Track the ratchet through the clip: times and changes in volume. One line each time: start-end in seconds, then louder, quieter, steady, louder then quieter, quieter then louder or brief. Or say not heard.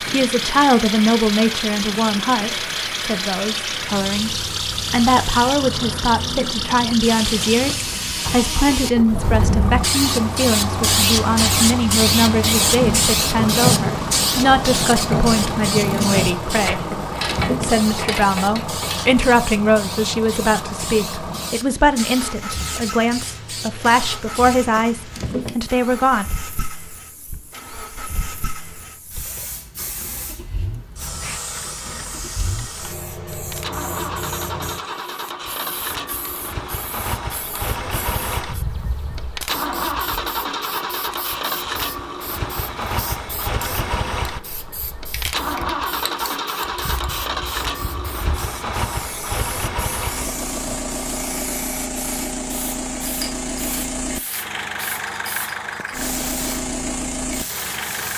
12.8-19.1 quieter.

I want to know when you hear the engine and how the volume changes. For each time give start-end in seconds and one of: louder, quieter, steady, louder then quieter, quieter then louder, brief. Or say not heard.
0.0-58.1 quieter then louder.